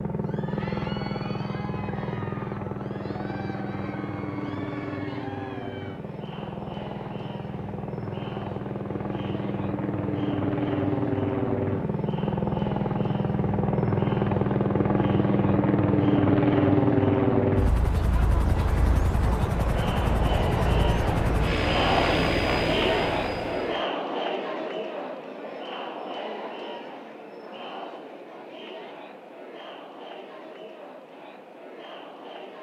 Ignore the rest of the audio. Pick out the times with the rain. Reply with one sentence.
The rain can't be heard in this clip.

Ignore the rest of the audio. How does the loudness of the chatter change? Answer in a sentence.
The loudness of the chatter goes up, then down.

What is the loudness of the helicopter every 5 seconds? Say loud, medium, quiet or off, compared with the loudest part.
medium, medium, loud, loud, medium, off, off.